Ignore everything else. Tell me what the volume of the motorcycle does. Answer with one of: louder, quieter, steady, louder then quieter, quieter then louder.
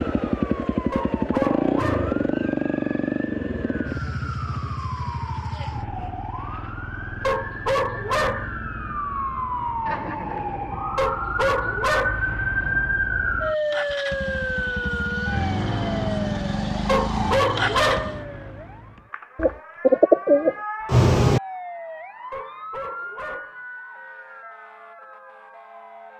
quieter then louder.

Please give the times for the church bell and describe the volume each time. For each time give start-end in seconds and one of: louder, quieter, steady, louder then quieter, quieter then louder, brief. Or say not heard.
not heard.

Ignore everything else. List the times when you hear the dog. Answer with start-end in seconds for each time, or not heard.
0.9-2.2, 7.2-8.6, 10.9-12.2, 16.9-18.2, 22.3-23.6.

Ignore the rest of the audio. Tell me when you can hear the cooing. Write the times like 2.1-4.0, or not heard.
19.4-21.4.